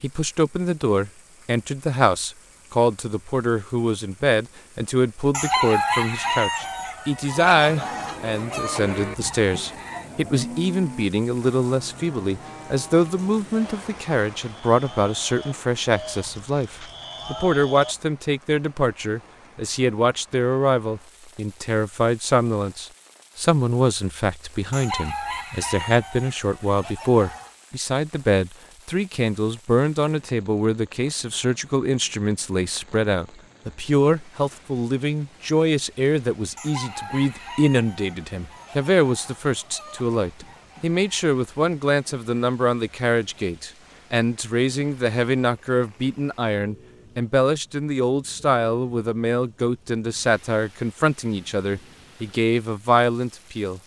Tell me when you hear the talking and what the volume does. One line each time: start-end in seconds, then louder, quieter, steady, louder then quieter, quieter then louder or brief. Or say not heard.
0.0-53.8 steady.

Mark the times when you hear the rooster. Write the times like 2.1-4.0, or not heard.
5.3-10.1, 24.7-27.5, 36.5-41.2.